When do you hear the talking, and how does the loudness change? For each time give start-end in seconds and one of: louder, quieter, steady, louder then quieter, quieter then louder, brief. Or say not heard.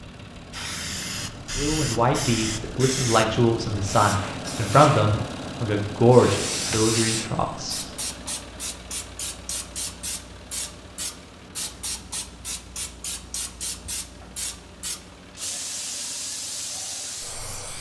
1.6-7.8 louder then quieter.